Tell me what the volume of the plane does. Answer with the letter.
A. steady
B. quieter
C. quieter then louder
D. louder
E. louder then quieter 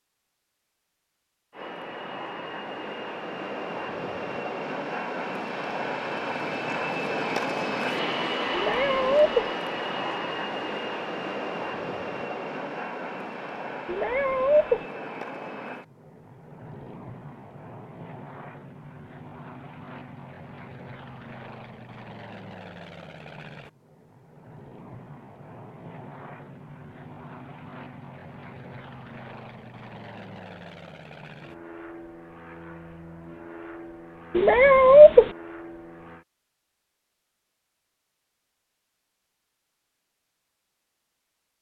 B.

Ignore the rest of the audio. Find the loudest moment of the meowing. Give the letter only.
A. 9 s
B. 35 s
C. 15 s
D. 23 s
B.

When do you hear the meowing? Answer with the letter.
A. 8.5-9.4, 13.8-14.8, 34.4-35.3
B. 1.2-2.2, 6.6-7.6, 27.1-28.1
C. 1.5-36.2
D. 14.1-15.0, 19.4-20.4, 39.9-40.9
A.